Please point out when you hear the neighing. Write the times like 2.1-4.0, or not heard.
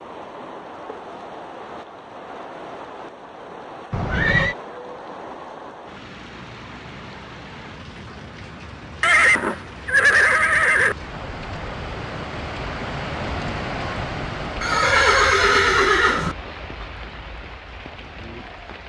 3.9-4.5, 9.0-10.9, 14.6-16.4.